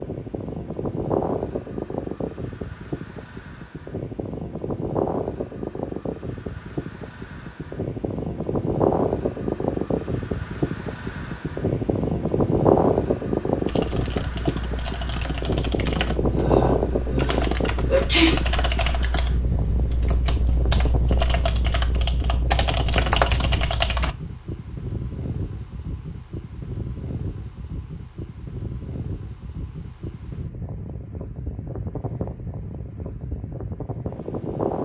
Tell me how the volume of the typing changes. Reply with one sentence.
The loudness of the typing goes up.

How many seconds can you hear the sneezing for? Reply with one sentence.
You can hear the sneezing for 2 seconds altogether.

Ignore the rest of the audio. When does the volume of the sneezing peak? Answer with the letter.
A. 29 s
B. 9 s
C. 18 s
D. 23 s
C.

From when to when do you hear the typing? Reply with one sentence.
The typing can be heard from 13.7 to 24.1 s.